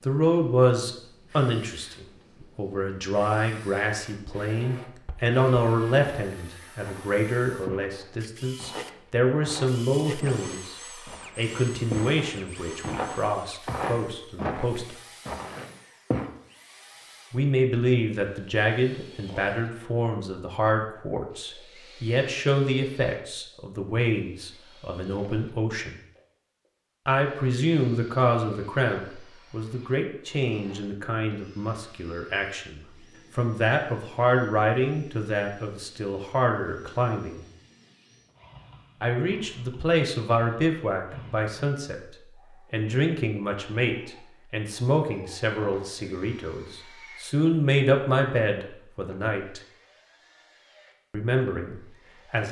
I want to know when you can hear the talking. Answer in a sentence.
The talking can be heard from 0.0 to 14.9 s, from 17.3 to 25.9 s, from 27.1 to 37.5 s, from 39.0 to 49.6 s and from 51.1 to 52.4 s.